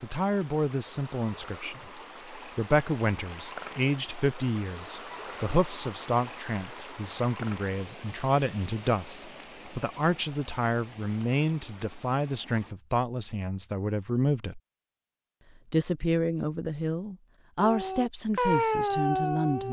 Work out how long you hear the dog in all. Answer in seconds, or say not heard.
2 s.